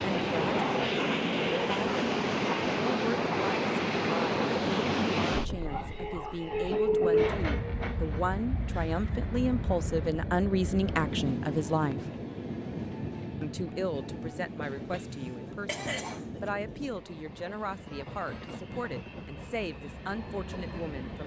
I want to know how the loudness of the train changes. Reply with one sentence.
The loudness of the train goes down.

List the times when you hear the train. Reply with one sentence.
You can hear the train from 0.0 to 21.2 s.